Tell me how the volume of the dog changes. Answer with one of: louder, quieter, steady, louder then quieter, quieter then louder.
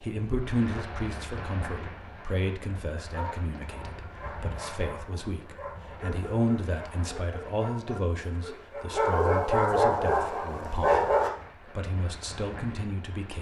louder.